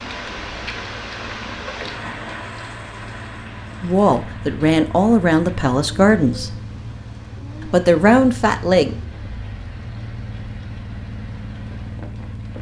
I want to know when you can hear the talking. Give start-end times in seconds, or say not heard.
3.8-6.5, 7.7-8.9.